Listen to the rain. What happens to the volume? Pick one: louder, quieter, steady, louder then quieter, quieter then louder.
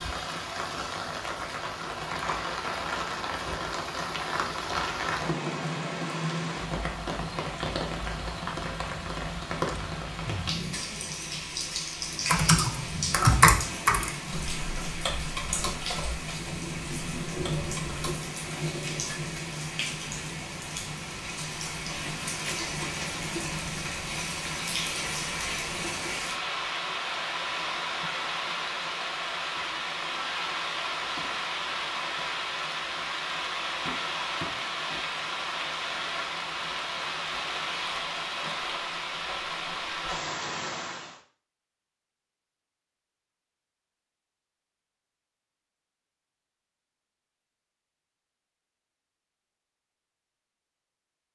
steady.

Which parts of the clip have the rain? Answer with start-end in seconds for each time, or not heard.
0.0-41.2.